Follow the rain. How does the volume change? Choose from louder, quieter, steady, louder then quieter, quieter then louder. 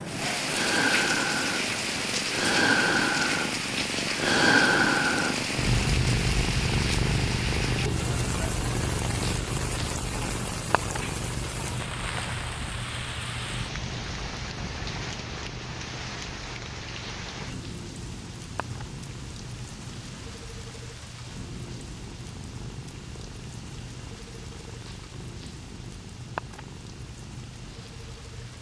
quieter.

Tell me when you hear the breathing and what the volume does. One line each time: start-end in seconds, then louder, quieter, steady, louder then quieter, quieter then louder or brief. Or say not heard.
not heard.